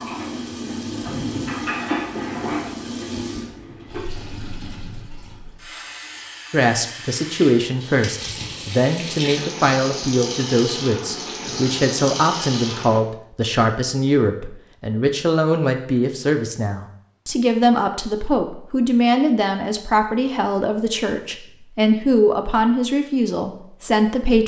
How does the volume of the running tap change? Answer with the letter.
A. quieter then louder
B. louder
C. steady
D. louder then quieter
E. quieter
A.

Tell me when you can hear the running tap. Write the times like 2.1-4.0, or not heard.
0.0-13.0.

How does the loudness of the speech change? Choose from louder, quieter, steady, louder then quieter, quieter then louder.
steady.